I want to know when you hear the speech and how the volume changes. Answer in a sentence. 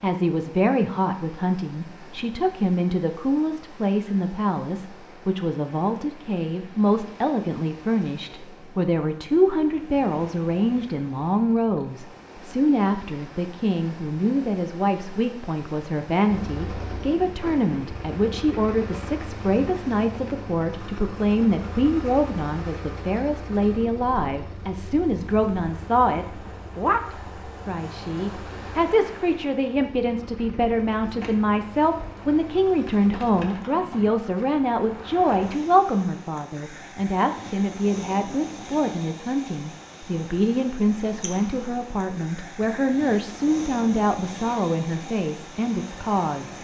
The speech can be heard from 0.0 to 46.5 s, at a steady volume.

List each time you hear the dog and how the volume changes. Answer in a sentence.
The dog can't be heard in this clip.